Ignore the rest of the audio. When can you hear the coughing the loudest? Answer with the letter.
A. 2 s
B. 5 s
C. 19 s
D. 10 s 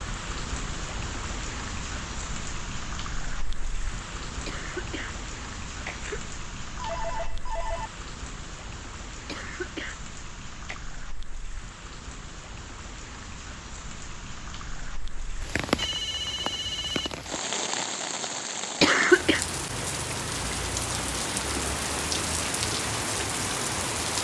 C.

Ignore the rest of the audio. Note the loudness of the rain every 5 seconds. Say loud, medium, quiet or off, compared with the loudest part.
medium, medium, quiet, loud, loud.